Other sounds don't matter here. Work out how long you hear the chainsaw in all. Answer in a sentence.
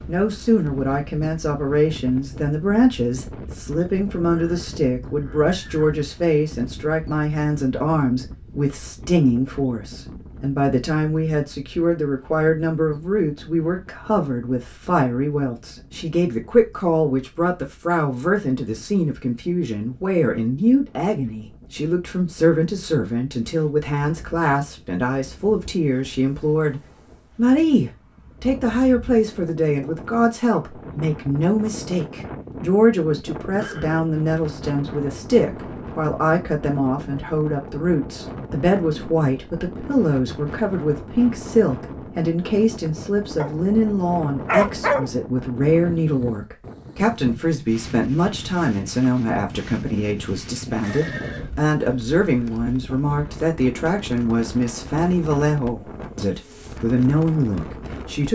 The chainsaw can't be heard in this clip.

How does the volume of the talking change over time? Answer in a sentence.
The loudness of the talking stays about the same.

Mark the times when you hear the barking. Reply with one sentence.
The barking can be heard from 43.4 to 45.3 s.